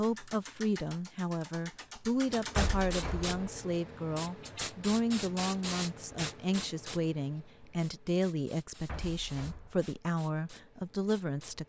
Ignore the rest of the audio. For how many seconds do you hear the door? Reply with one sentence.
You can hear the door for 2 seconds altogether.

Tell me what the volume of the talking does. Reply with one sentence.
The volume of the talking stays about the same.